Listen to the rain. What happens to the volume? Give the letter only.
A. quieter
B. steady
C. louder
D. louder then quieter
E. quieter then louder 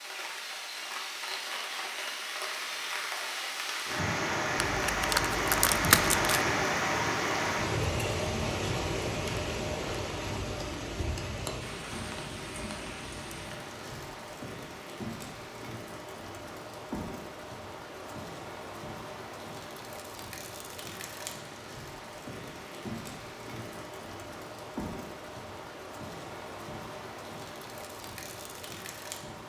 A.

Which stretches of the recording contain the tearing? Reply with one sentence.
The tearing can be heard from 4.7 to 6.3 s.